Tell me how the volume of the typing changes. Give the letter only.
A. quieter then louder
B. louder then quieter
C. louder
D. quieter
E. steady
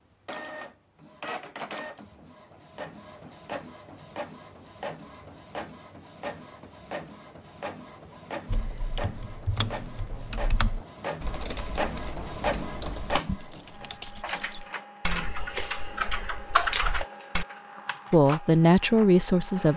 C.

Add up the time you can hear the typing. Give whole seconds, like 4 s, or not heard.
9 s.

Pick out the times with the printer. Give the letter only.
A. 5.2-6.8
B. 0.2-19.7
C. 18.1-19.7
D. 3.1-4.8
B.